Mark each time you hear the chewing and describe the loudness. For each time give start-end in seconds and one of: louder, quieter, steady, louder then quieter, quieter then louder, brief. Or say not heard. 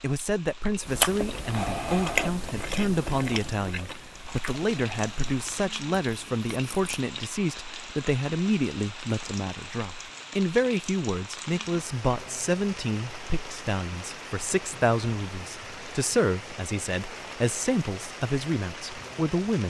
0.8-7.0 quieter.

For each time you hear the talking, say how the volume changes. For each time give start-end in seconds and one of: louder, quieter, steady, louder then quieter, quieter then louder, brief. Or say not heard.
0.0-19.6 steady.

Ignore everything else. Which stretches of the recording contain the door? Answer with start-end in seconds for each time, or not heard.
not heard.